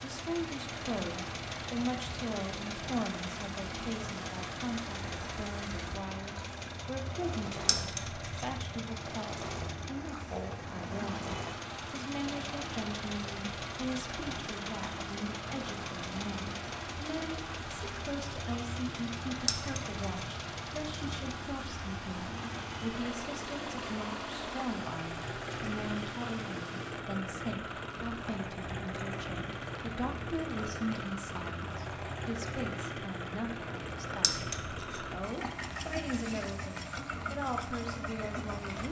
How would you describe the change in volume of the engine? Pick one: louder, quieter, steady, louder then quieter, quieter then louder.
steady.